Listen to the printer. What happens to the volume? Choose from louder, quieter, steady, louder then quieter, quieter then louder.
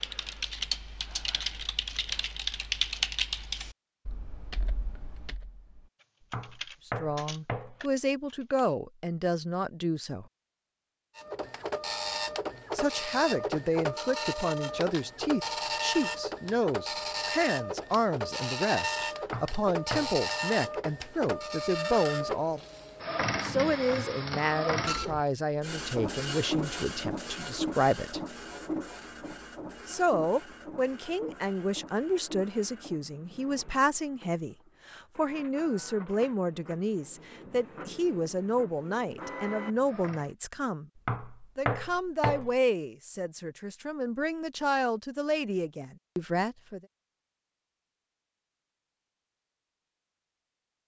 quieter.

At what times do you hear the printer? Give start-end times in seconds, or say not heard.
11.2-40.4.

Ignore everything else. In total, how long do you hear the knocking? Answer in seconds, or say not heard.
4 s.